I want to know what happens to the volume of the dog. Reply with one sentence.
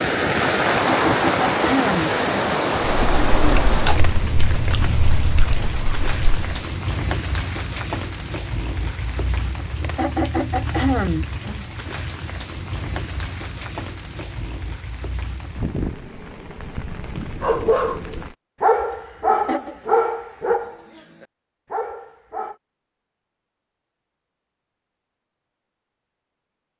The loudness of the dog goes up, then down.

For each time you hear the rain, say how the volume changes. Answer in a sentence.
You can hear the rain from 0.0 to 18.4 s, getting quieter.